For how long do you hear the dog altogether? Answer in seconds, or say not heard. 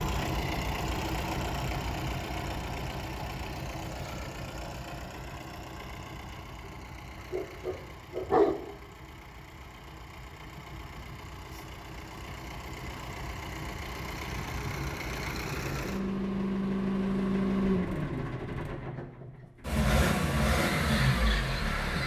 2 s.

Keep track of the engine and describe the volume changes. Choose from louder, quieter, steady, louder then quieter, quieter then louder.
quieter then louder.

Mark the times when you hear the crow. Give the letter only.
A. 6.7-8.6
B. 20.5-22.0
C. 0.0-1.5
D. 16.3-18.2
B.